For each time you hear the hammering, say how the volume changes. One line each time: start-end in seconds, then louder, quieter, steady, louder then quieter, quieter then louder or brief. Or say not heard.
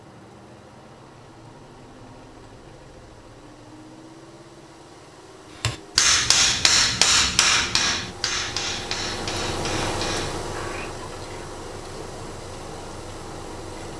5.6-11.3 quieter.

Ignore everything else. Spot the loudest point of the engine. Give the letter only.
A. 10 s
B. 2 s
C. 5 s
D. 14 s
A.